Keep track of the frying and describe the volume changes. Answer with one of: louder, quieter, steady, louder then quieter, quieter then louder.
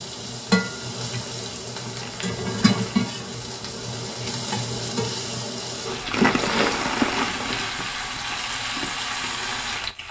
steady.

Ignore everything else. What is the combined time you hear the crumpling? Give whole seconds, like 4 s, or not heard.
4 s.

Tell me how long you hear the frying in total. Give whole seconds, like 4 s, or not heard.
10 s.